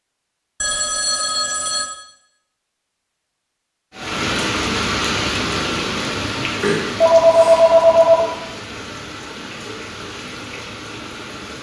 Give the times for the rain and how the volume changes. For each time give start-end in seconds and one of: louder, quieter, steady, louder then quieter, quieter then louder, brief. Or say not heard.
3.9-11.5 quieter.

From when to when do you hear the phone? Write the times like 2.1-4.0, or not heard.
0.6-1.9, 6.6-8.2.